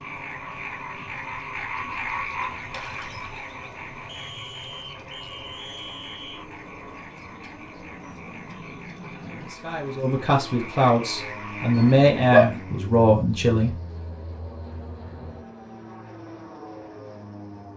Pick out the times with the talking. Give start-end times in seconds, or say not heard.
9.4-13.8.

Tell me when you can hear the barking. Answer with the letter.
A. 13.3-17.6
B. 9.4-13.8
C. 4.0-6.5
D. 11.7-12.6
D.